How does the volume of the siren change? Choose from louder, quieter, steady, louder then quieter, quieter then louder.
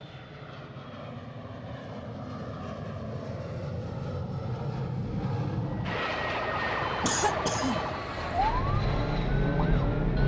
louder.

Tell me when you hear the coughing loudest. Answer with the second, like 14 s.
7 s.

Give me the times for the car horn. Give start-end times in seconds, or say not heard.
not heard.